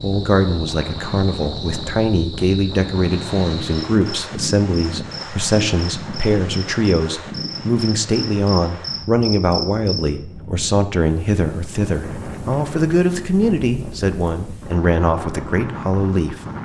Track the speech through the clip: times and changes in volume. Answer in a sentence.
You can hear the speech from 0.0 to 16.4 s, at a steady volume.